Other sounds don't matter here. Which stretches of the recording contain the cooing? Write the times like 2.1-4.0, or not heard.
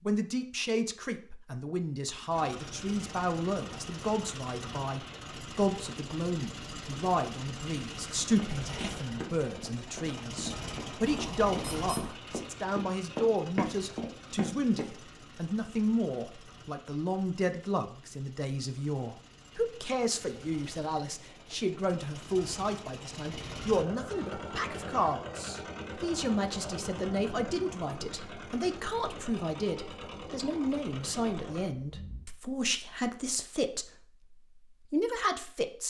not heard.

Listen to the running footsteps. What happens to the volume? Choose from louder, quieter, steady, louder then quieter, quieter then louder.
louder.